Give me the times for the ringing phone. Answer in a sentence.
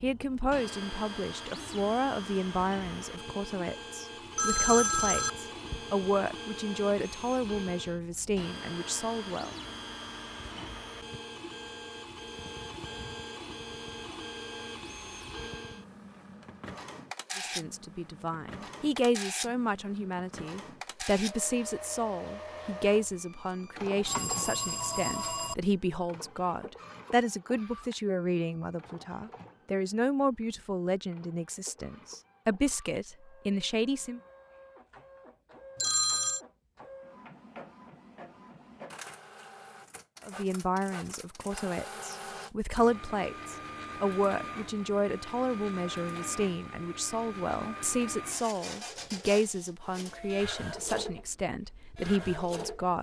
The ringing phone can be heard from 4.3 to 5.8 s, from 24.1 to 25.6 s and from 35.8 to 36.4 s.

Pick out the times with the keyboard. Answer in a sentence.
You can't hear the keyboard here.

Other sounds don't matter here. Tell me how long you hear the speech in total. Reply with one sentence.
You can hear the speech for 39 seconds altogether.